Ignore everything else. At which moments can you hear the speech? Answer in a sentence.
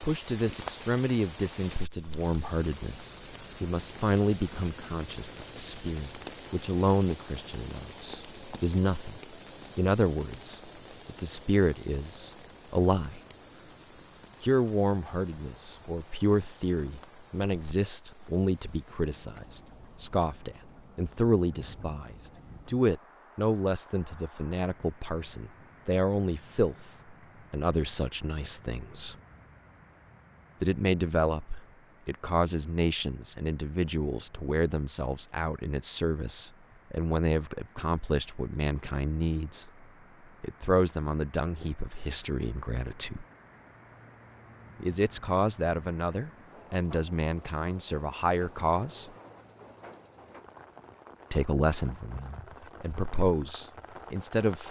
You can hear the speech from 0.0 to 13.2 s, from 14.4 to 29.1 s, from 30.6 to 39.7 s, from 40.4 to 43.2 s, from 44.8 to 49.1 s and from 51.3 to 54.6 s.